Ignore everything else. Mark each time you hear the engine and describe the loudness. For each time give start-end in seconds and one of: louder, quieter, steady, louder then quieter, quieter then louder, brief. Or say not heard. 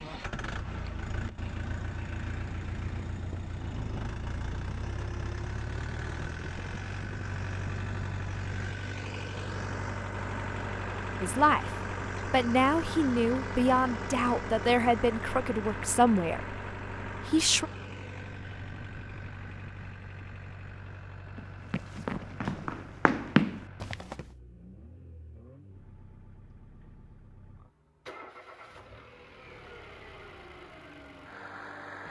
0.0-32.0 quieter.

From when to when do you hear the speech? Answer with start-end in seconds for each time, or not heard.
11.2-17.6.